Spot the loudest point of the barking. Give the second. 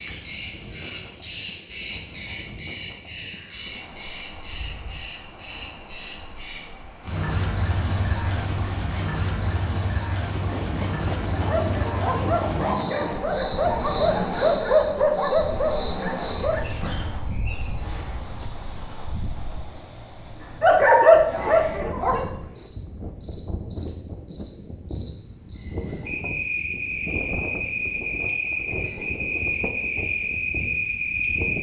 21 s.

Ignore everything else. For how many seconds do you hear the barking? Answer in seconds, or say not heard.
7 s.